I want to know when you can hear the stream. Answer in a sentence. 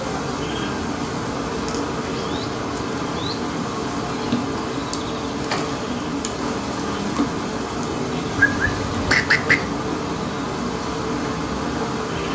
You can't hear the stream here.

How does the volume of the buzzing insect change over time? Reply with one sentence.
The loudness of the buzzing insect stays about the same.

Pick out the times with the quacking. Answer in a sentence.
You can hear the quacking from 8.3 to 9.7 s.